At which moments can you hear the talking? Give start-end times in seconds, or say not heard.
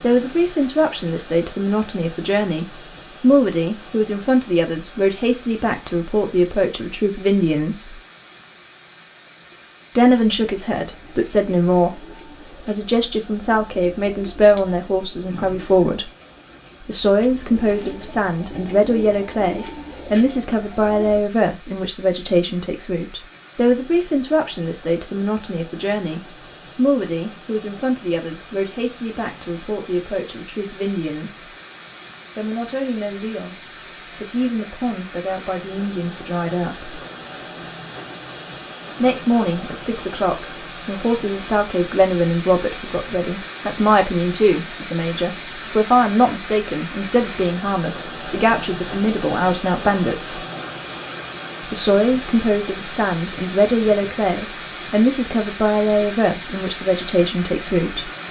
0.0-8.0, 9.9-16.1, 16.8-31.5, 32.4-37.0, 39.0-50.5, 51.6-58.1.